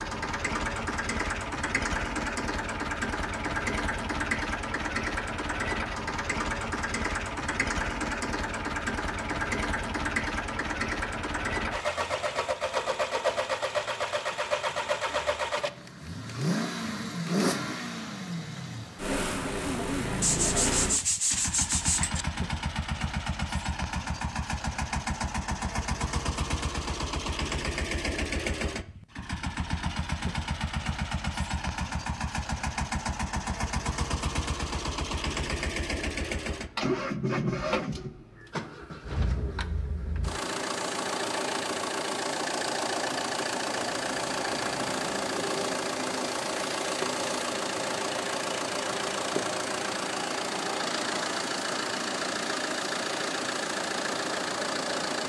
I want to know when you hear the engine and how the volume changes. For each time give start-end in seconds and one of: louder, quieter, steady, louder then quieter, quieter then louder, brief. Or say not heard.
0.0-55.2 steady.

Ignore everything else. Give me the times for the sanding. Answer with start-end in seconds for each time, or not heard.
20.2-22.2.